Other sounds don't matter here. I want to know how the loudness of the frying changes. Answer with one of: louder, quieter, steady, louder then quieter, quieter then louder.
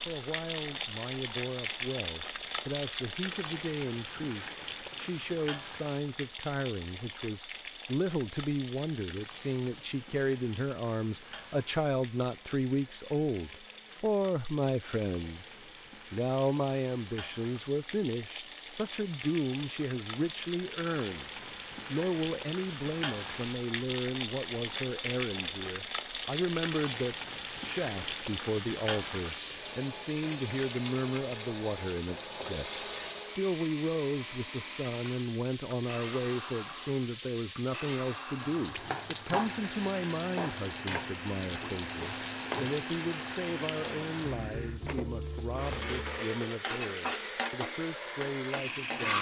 quieter then louder.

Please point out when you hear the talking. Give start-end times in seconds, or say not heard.
0.1-15.4, 16.1-49.1.